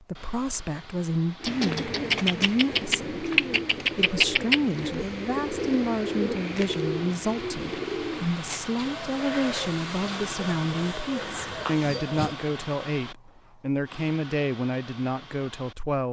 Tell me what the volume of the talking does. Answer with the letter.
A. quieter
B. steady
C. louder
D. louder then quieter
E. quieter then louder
B.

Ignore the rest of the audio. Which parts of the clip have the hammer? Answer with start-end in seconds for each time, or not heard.
not heard.